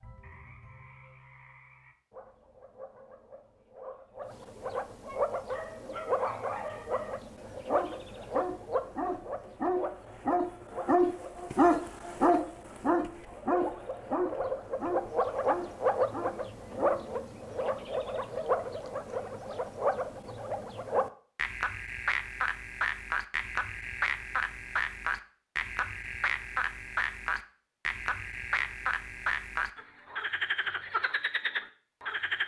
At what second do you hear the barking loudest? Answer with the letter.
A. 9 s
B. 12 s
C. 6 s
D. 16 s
B.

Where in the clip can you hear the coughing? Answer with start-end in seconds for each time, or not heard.
not heard.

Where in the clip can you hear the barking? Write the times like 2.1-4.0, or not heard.
5.0-17.0.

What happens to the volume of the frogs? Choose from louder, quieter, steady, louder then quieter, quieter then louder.
louder.